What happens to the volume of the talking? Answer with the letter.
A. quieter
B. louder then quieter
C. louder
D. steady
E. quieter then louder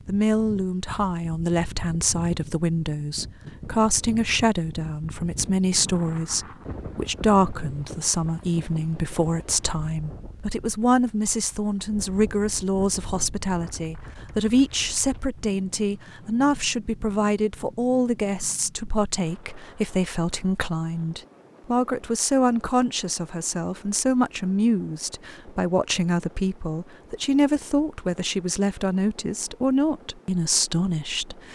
D.